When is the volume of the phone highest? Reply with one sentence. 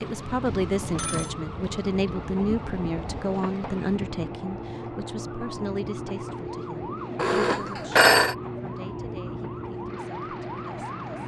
The loudest moment of the phone is at 8 seconds.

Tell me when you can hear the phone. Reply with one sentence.
You can hear the phone from 0.5 to 1.4 s and from 7.2 to 8.3 s.